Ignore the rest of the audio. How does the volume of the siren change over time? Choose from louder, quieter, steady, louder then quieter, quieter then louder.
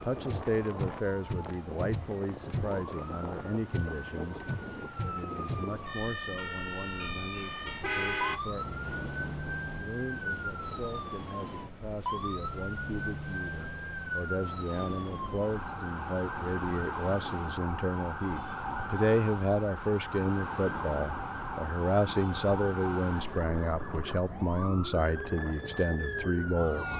steady.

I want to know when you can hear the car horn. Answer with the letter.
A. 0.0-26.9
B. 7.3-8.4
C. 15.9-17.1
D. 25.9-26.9
B.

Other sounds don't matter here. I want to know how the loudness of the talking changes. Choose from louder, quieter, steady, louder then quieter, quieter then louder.
quieter then louder.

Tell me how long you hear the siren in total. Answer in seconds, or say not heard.
27 s.